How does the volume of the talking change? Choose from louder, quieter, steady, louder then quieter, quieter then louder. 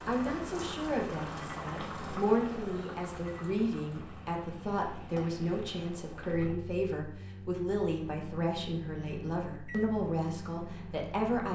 steady.